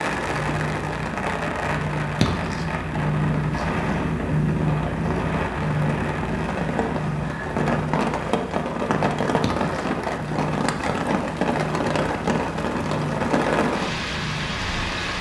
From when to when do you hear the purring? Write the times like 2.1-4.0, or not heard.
0.0-14.9.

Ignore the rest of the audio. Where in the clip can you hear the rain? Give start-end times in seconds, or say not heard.
0.0-15.1.